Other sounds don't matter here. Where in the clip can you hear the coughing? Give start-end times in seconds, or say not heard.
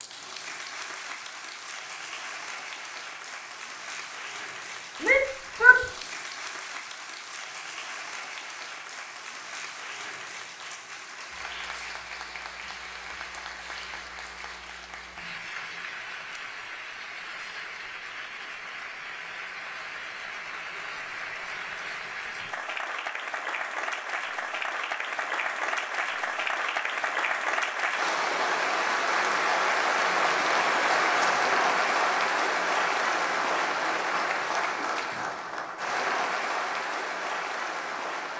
not heard.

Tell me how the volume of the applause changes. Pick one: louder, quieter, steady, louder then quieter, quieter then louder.
louder.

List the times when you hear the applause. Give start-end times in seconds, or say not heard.
0.0-38.3.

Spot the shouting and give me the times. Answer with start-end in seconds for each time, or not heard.
5.0-5.8.